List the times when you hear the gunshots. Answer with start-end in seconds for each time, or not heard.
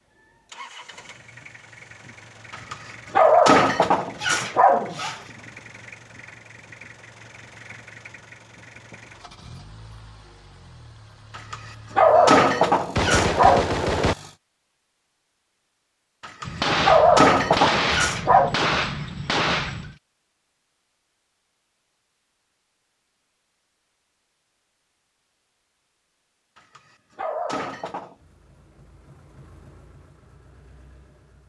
12.1-14.2, 16.4-19.9.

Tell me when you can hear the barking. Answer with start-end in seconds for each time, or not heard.
2.5-5.2, 11.3-13.7, 16.2-18.6, 26.6-28.1.